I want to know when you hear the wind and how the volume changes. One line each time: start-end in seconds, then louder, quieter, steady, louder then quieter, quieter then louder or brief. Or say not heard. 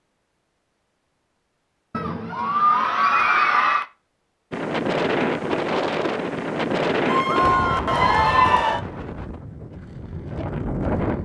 4.5-11.1 quieter.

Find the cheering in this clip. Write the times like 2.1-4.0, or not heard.
1.9-3.9, 7.0-8.8.